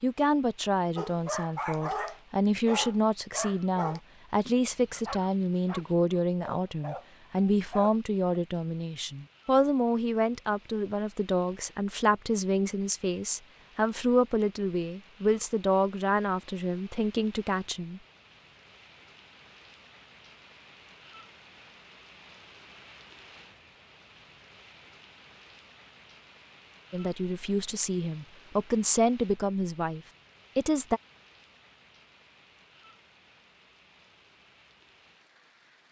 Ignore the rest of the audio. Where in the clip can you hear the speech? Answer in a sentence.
You can hear the speech from 0.0 to 18.0 s and from 26.9 to 31.0 s.